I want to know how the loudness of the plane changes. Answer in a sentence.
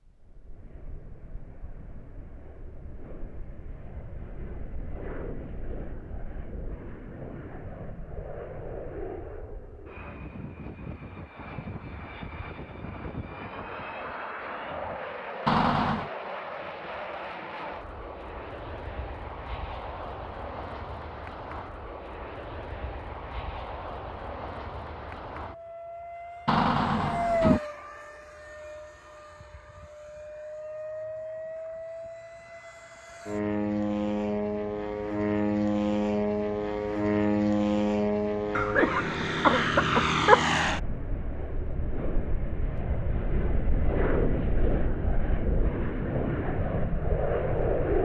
The volume of the plane goes up.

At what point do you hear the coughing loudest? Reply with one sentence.
The loudest moment of the coughing is at 40 seconds.